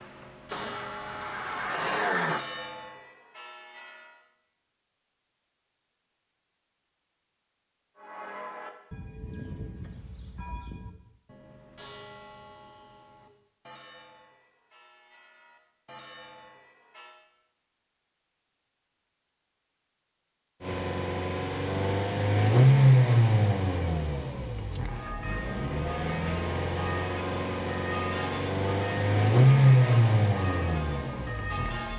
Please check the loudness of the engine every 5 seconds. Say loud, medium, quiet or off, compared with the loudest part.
medium, off, off, off, loud, loud, medium.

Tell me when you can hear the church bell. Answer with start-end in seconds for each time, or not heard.
0.0-4.2, 8.0-17.2, 24.9-31.9.